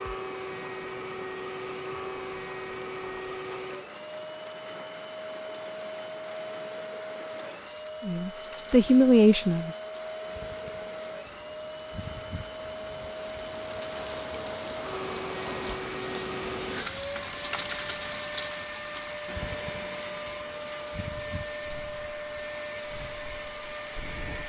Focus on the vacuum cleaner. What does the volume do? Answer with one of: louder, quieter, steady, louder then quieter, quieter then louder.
steady.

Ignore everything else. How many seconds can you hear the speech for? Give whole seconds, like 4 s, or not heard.
2 s.